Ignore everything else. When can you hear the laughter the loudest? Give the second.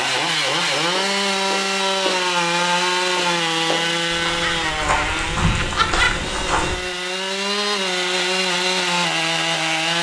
6 s.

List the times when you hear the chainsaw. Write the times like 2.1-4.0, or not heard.
0.0-9.9.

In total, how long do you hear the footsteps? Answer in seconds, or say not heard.
6 s.